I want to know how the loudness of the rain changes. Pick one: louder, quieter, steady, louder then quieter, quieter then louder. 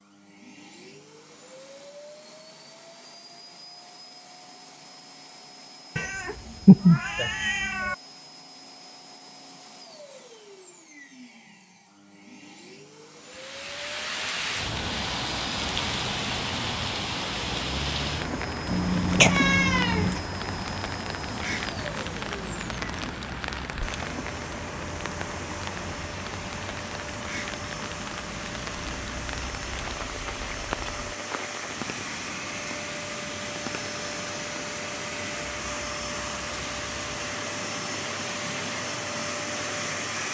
quieter.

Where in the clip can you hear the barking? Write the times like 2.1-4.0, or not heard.
not heard.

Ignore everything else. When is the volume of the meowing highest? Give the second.
7 s.